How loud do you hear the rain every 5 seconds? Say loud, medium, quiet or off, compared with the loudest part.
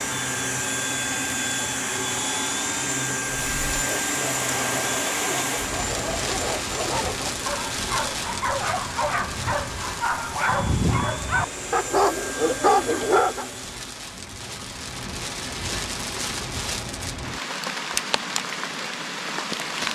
loud, loud, medium, loud.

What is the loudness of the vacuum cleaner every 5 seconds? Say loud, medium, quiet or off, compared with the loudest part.
loud, medium, medium, off.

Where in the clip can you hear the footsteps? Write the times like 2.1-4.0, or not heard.
not heard.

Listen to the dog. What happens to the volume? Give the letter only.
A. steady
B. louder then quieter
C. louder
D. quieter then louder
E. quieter
C.